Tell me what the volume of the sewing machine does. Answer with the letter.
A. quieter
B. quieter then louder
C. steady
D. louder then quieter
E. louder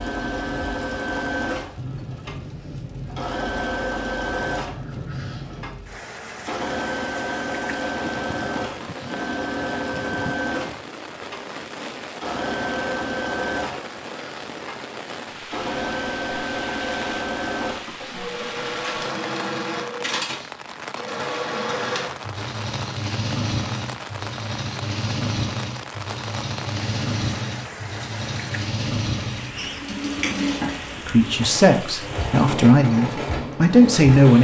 C.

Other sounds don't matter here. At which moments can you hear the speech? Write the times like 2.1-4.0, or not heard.
31.1-34.3.